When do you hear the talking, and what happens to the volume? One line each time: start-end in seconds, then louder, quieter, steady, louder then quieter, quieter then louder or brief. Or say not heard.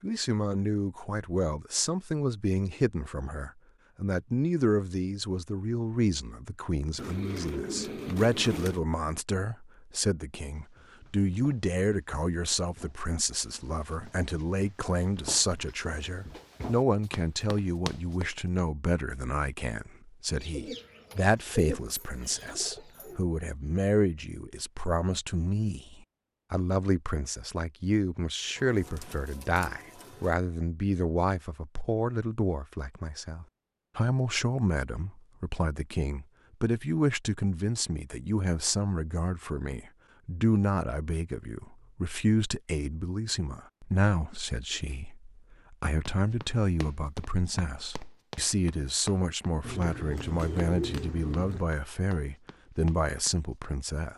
0.0-54.1 steady.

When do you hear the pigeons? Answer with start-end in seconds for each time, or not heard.
7.0-8.8, 20.4-23.2, 28.6-30.4, 49.6-51.6.